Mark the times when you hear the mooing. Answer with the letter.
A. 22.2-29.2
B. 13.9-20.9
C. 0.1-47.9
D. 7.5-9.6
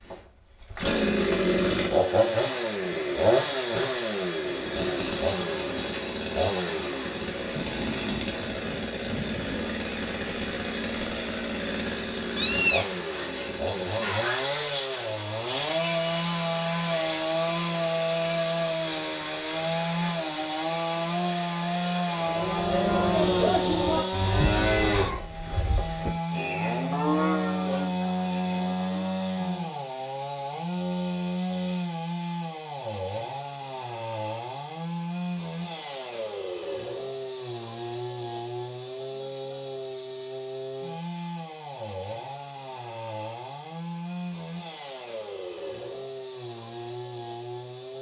A.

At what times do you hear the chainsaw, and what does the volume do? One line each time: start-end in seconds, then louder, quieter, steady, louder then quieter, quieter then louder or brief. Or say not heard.
0.1-47.9 quieter.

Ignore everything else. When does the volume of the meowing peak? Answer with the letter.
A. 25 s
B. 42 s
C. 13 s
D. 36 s
C.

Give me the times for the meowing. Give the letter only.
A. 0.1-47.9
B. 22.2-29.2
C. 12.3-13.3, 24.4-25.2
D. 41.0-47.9
C.